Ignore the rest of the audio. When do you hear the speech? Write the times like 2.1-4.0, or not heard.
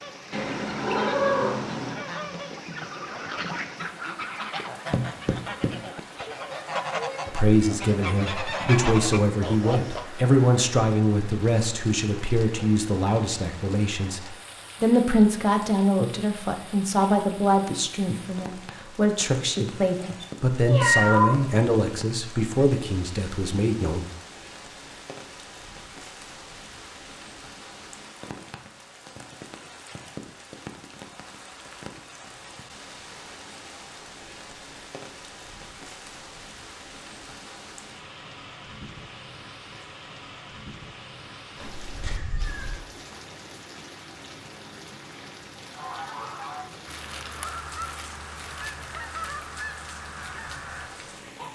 7.2-24.0.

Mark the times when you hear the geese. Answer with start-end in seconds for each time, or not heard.
0.0-10.1, 45.8-51.5.